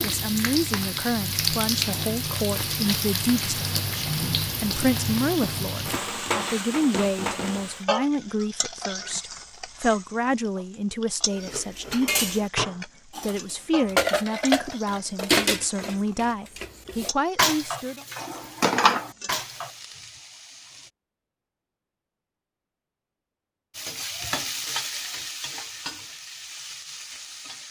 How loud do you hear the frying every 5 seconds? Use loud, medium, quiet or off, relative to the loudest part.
loud, loud, quiet, quiet, medium, medium.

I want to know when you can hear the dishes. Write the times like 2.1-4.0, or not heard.
11.3-19.7.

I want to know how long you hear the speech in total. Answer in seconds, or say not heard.
18 s.